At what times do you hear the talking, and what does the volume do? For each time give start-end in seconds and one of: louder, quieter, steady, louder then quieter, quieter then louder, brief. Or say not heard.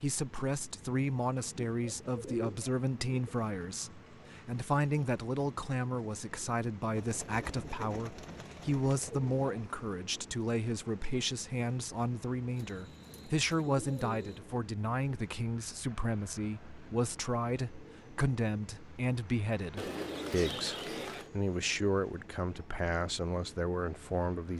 0.0-24.5 steady.